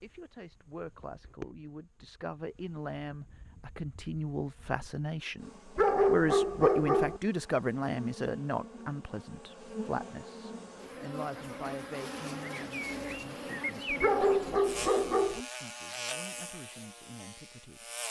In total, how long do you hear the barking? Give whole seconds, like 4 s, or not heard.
3 s.